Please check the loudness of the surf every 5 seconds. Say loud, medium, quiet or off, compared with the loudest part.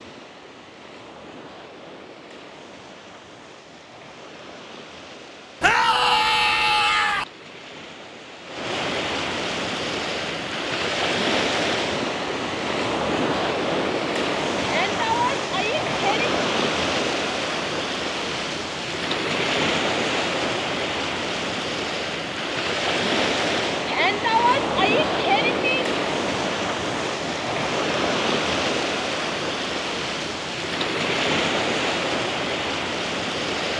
quiet, medium, loud, loud, loud, loud, loud.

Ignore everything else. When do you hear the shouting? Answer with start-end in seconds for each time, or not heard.
5.6-7.2, 14.6-16.3, 23.9-25.9.